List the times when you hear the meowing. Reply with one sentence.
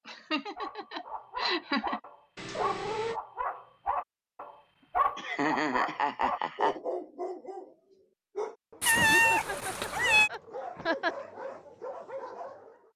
You can hear the meowing from 2.4 to 3.2 s and from 8.8 to 10.3 s.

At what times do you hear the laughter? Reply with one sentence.
You can hear the laughter from 0.1 to 2.0 s, from 5.2 to 6.8 s and from 8.9 to 11.2 s.